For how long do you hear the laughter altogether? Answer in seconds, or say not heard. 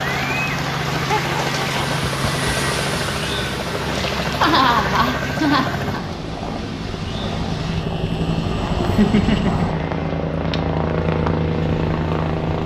4 s.